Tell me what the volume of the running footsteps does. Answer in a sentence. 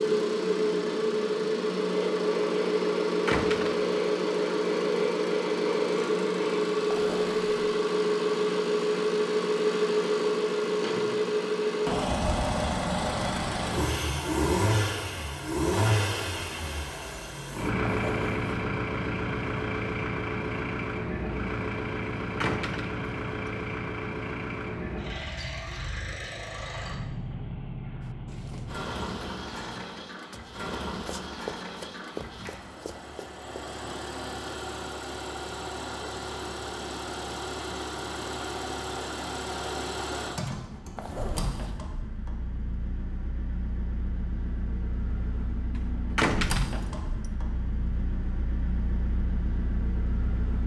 The loudness of the running footsteps goes up.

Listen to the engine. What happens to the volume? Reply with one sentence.
The loudness of the engine goes down.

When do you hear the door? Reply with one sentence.
You can hear the door from 3.2 to 3.9 s, from 22.4 to 23.0 s and from 46.1 to 47.0 s.